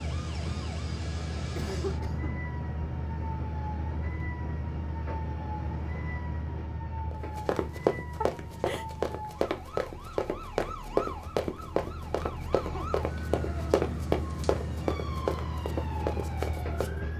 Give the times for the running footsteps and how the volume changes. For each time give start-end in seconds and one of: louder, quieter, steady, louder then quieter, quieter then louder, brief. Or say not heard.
7.1-16.9 steady.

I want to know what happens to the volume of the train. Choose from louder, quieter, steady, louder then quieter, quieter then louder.
quieter then louder.